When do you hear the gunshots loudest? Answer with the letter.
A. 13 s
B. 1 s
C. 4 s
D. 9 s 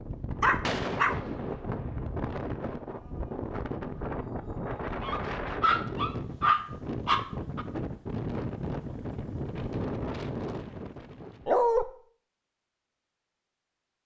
B.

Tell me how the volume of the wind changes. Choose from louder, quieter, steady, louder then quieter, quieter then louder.
steady.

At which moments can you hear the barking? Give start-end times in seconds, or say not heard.
0.4-1.1, 5.0-7.7, 11.4-11.8.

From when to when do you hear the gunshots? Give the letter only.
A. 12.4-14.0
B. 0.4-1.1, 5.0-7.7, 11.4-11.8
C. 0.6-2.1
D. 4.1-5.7
C.